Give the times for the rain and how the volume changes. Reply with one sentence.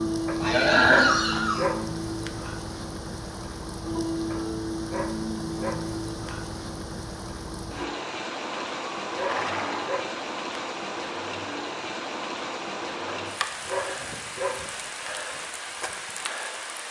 The rain can be heard from 0.0 to 16.8 s, at a steady volume.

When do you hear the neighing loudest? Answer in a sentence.
The volume of the neighing peaks at 1 second.